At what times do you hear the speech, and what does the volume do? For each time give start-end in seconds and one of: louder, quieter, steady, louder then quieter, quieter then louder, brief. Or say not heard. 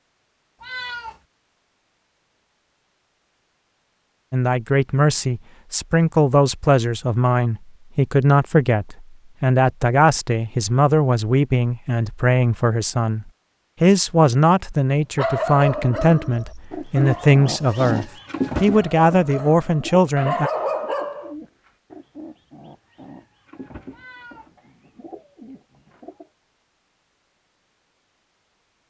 4.3-20.5 steady.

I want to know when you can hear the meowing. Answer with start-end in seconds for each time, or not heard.
0.6-1.2, 23.9-24.5.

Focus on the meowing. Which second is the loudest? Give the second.
1 s.